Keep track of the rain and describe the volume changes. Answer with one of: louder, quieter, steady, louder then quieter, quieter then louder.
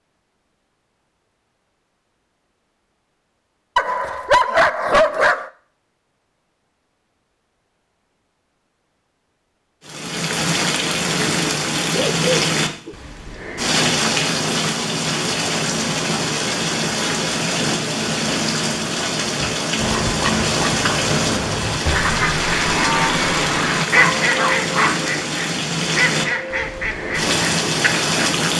steady.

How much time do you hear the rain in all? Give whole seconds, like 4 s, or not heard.
19 s.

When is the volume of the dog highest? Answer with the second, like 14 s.
4 s.